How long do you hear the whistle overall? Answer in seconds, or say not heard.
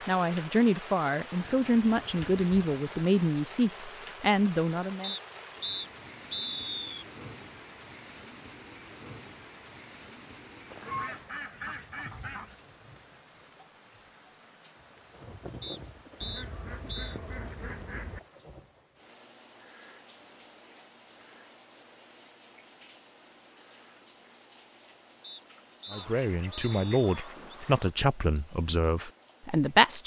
6 s.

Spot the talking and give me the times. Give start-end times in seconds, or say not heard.
0.1-5.2, 25.9-30.0.